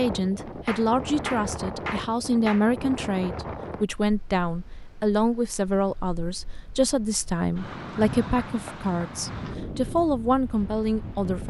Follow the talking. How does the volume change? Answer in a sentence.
The loudness of the talking stays about the same.